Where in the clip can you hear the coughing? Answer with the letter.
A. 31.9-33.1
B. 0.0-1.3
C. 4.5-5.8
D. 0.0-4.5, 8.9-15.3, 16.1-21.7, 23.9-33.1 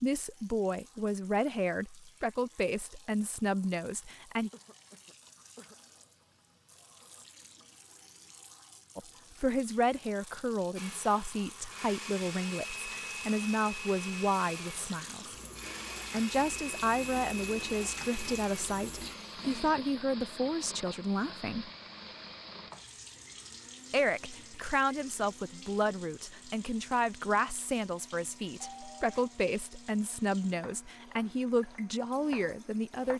C.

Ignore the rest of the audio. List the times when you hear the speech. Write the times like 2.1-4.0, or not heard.
0.0-4.5, 8.9-15.3, 16.1-21.7, 23.9-33.1.